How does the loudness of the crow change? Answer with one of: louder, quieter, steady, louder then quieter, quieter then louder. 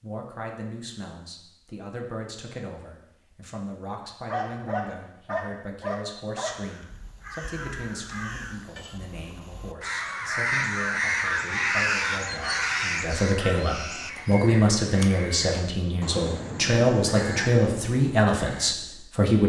louder then quieter.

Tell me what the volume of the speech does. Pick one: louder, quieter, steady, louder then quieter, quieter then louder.
louder.